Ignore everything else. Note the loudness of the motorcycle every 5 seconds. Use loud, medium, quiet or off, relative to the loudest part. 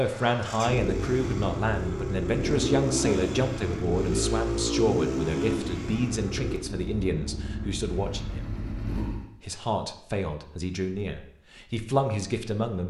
loud, loud, off.